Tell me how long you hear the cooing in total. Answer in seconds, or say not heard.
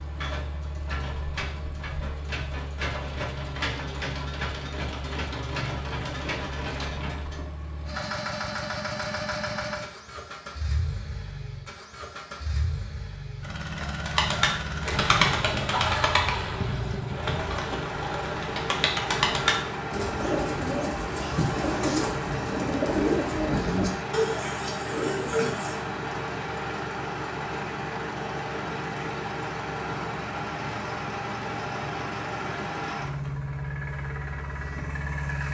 12 s.